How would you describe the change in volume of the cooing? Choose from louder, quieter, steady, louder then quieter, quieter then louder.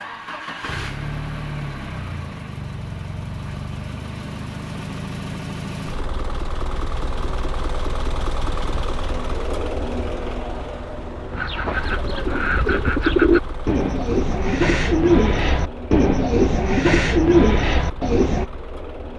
louder.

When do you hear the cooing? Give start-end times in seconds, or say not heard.
11.3-18.4.